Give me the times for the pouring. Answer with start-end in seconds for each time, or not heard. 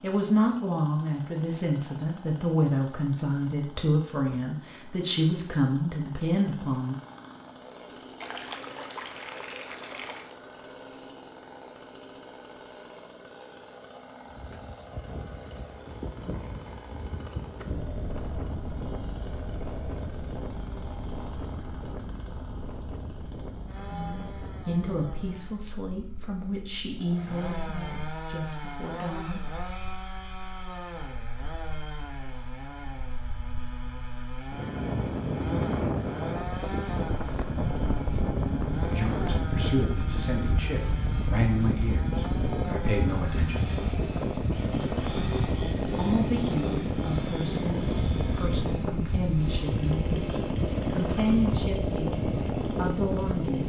8.2-10.3.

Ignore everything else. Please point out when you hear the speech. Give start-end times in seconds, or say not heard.
0.0-7.0, 23.9-29.4, 38.8-43.8, 46.0-53.6.